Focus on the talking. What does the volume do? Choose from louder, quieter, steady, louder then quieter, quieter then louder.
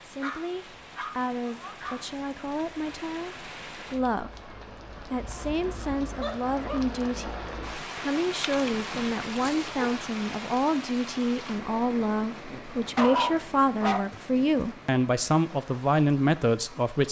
louder.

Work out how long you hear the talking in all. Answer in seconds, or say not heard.
17 s.